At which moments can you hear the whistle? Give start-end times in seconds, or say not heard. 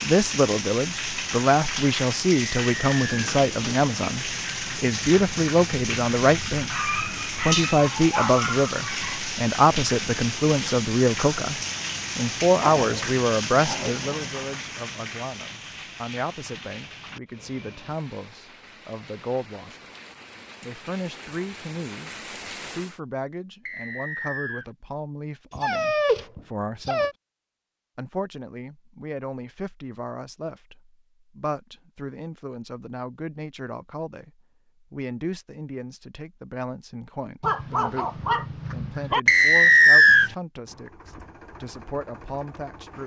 2.3-3.3, 23.6-24.6, 39.2-40.3.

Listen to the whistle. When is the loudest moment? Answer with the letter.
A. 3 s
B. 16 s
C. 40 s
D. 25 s
C.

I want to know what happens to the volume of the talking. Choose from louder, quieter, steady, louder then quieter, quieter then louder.
quieter.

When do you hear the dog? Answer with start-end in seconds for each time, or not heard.
6.7-9.2, 12.6-14.4, 25.5-27.1, 37.4-39.2.